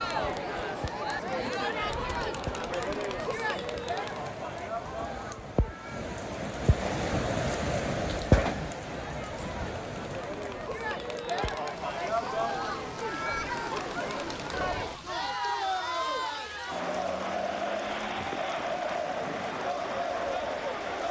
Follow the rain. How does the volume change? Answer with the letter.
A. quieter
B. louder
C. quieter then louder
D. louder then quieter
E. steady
D.